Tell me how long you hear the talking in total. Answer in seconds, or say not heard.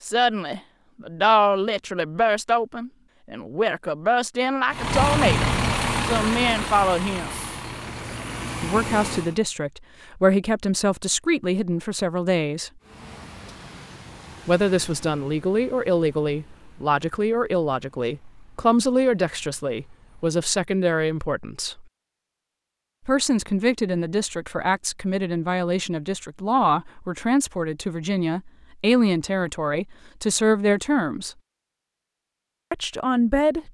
28 s.